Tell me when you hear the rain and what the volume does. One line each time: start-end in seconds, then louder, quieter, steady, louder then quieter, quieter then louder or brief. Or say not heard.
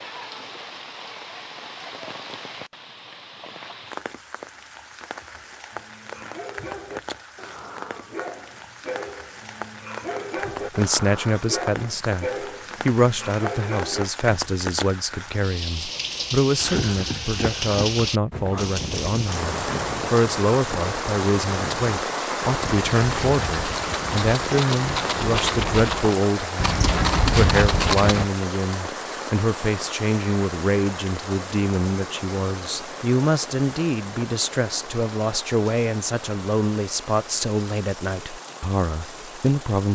0.0-39.9 louder then quieter.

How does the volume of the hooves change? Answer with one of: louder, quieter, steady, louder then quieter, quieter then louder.
louder.